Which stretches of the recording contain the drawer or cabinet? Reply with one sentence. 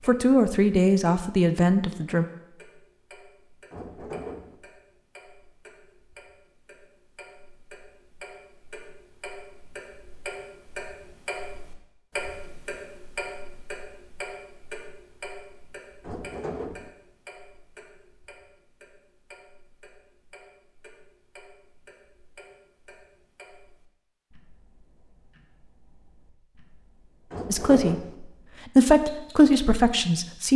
The drawer or cabinet can be heard from 3.7 to 4.5 s, from 16.0 to 16.9 s and from 27.3 to 28.1 s.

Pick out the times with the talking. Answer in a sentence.
You can hear the talking from 0.1 to 2.2 s and from 27.5 to 30.5 s.